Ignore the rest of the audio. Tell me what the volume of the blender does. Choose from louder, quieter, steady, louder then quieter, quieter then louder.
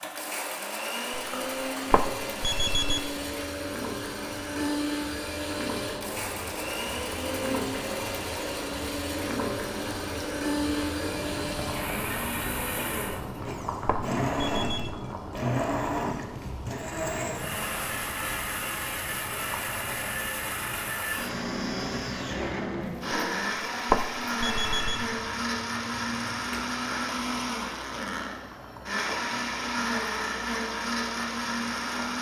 steady.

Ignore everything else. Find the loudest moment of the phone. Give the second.
24 s.